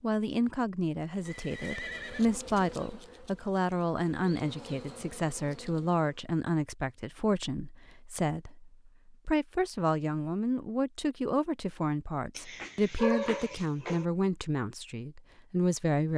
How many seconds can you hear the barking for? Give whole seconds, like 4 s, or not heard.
2 s.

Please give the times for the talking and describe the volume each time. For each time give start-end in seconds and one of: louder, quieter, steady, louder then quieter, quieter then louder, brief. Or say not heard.
0.0-16.1 steady.